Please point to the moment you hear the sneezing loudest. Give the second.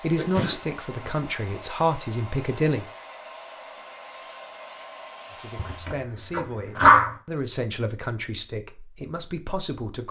7 s.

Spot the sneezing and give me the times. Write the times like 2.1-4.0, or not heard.
0.1-1.1, 5.5-7.1.